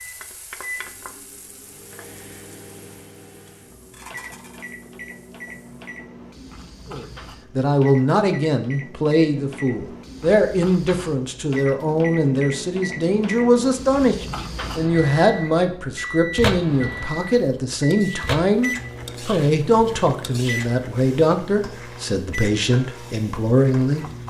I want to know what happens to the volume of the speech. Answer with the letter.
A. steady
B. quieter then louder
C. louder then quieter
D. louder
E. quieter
A.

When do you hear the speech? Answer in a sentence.
You can hear the speech from 6.9 to 24.1 s.